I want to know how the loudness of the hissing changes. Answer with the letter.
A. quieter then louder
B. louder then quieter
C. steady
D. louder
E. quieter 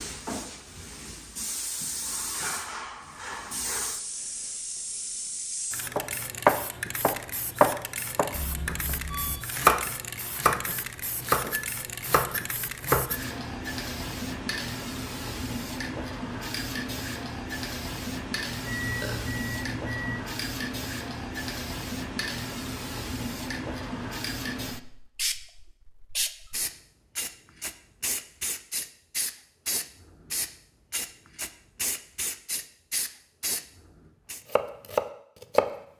C.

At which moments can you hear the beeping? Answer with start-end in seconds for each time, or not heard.
8.3-9.4, 18.6-20.2.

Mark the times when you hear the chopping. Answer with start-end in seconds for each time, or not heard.
6.0-13.2, 34.5-35.7.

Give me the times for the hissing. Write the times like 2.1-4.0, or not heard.
0.0-34.4.